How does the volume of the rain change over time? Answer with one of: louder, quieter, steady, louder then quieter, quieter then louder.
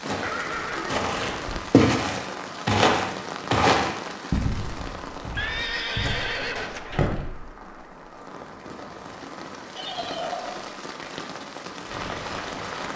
quieter then louder.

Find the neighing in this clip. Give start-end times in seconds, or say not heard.
0.2-1.6, 5.3-7.0, 9.8-10.7.